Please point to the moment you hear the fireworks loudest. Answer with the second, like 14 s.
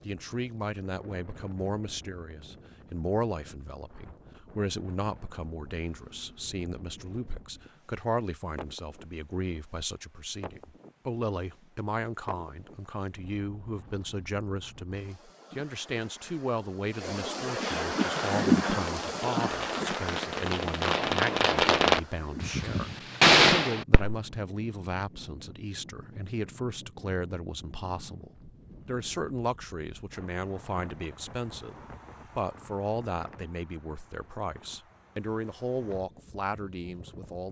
23 s.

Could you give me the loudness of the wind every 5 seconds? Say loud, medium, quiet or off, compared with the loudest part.
quiet, quiet, quiet, loud, quiet, quiet, quiet, quiet.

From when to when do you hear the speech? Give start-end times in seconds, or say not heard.
0.1-31.8, 32.4-37.4.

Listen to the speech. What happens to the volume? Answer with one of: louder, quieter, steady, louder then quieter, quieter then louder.
steady.